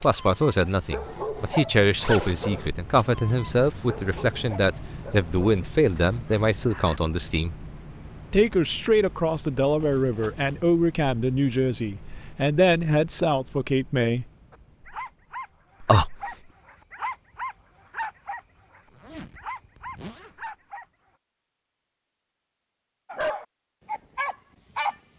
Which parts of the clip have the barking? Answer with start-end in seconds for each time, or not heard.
0.0-7.0, 14.5-21.1, 23.1-24.9.